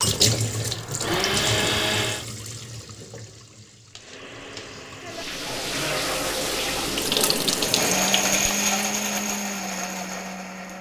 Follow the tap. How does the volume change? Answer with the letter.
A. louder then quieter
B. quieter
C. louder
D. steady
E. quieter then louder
E.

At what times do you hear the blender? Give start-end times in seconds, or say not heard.
0.0-2.2, 3.9-10.7.